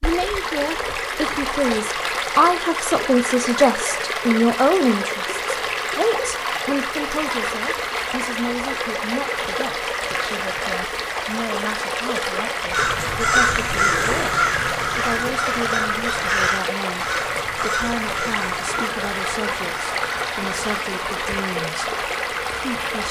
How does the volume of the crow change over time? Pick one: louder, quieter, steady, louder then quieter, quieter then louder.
quieter.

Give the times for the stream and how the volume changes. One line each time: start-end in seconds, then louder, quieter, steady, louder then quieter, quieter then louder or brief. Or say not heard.
0.0-23.0 steady.